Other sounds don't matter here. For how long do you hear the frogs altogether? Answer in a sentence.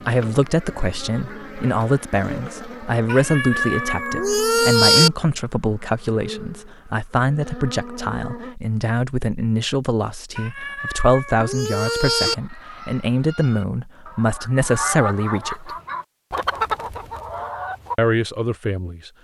You can't hear the frogs here.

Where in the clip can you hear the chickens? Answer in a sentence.
The chickens can be heard from 11.8 to 17.9 s.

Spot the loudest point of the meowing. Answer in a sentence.
The volume of the meowing peaks at 5 seconds.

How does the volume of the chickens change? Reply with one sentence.
The volume of the chickens goes up.